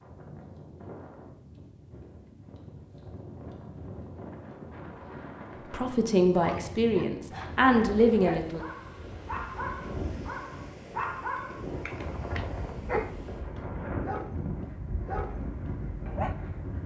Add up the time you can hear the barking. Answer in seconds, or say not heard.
10 s.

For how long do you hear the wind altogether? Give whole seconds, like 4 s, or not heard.
17 s.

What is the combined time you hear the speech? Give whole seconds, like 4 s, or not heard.
3 s.